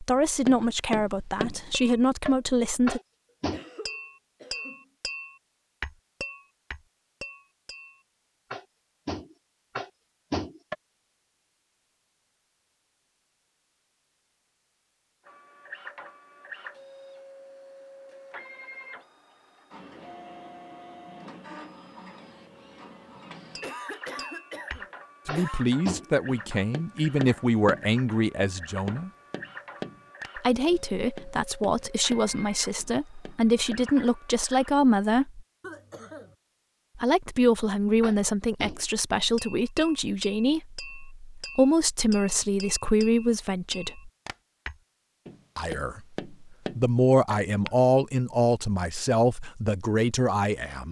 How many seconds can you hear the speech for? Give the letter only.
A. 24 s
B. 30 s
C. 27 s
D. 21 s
A.